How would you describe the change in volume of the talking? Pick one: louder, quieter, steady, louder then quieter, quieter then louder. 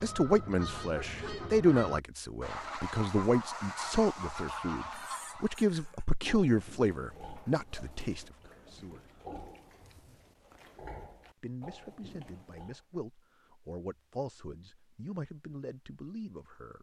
quieter.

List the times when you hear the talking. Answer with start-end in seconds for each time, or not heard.
0.0-9.0, 11.4-16.7.